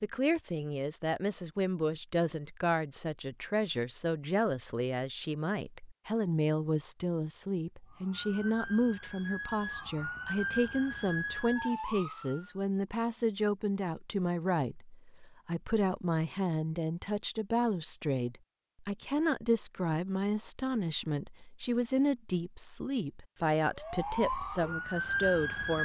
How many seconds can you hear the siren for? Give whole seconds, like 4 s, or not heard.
7 s.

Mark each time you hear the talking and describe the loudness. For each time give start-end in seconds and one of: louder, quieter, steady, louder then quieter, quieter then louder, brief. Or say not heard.
0.0-25.8 steady.